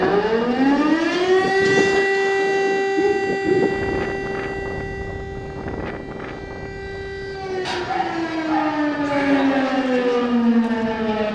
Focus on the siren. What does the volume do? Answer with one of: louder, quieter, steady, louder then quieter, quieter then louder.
quieter then louder.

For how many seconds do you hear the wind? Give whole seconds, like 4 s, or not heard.
11 s.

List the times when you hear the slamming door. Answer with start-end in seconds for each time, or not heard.
not heard.